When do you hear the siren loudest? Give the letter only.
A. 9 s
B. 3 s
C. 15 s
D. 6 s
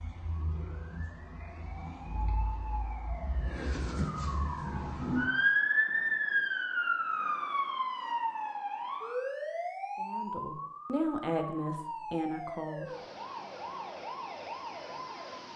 D.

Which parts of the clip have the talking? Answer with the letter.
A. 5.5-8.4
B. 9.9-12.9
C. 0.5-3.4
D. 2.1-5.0
B.